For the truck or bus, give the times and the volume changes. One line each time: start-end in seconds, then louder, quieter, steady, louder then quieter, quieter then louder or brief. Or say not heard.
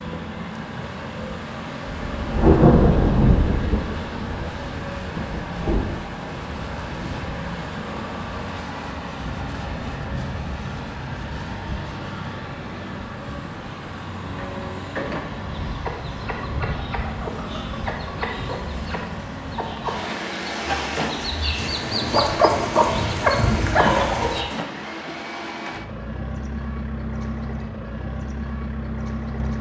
0.0-29.5 steady.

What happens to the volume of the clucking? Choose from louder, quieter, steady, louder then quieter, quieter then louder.
louder.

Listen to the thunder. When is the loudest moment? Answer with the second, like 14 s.
3 s.